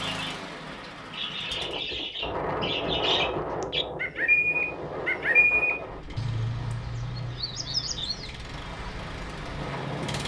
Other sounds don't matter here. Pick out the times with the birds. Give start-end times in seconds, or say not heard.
0.0-10.2.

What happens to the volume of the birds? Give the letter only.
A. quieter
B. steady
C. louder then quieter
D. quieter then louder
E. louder
C.